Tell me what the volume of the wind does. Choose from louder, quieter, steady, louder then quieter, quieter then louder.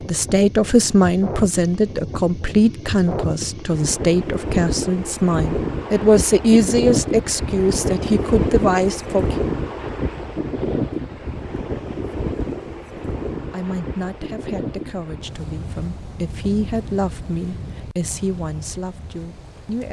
louder then quieter.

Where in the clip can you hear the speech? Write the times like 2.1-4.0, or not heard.
0.0-9.3, 13.5-19.8.